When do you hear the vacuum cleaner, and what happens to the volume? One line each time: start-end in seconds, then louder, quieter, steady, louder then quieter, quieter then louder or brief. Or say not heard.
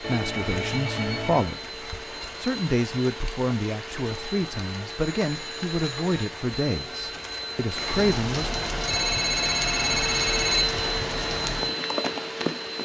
0.0-12.8 louder.